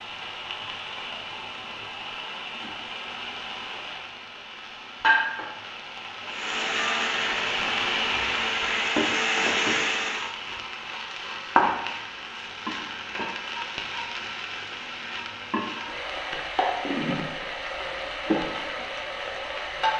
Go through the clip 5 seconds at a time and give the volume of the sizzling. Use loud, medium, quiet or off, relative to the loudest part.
medium, loud, loud, loud.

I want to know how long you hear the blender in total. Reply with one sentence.
You can hear the blender for 4 seconds altogether.